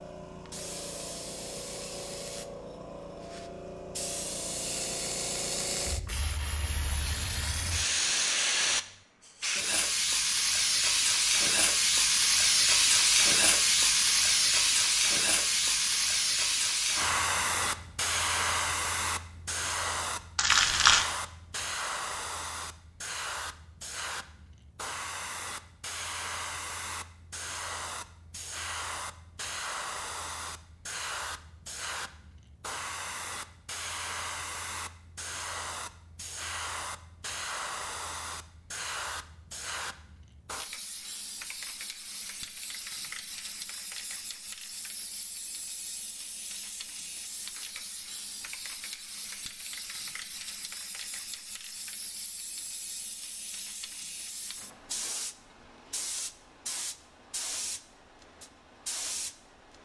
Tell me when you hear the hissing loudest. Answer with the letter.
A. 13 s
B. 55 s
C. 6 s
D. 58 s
A.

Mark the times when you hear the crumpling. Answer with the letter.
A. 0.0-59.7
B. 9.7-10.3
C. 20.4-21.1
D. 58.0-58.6
C.